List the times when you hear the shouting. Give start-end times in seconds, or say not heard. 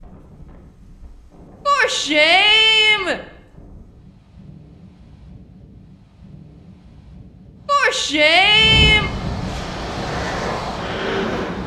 1.6-3.2, 7.7-9.1.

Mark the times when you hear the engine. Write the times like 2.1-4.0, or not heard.
9.5-11.6.